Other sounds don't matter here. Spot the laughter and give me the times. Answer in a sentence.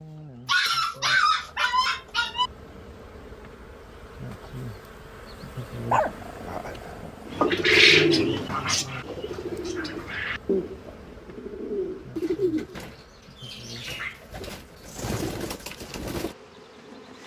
You can't hear the laughter here.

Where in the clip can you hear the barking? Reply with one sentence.
You can hear the barking from 0.5 to 2.5 s, from 5.9 to 7.5 s and from 13.8 to 14.2 s.